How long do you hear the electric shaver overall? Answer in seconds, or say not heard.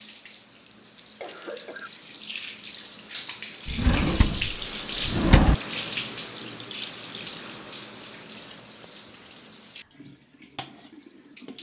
not heard.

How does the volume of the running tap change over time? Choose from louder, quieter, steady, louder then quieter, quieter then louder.
louder then quieter.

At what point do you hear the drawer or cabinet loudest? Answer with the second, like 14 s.
5 s.